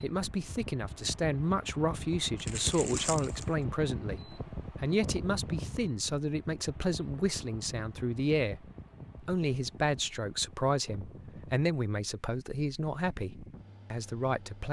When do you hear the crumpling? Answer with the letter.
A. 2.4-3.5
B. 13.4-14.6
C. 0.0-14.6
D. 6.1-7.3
A.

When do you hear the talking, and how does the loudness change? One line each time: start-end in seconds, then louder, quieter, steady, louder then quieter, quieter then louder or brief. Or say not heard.
0.0-14.6 steady.